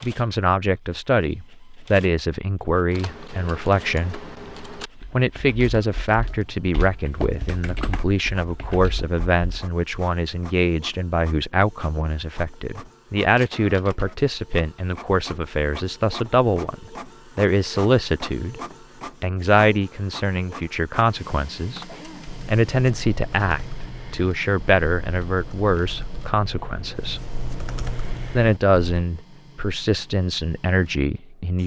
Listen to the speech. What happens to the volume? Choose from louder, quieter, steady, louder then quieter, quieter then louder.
steady.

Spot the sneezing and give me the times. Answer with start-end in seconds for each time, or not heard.
21.9-22.4.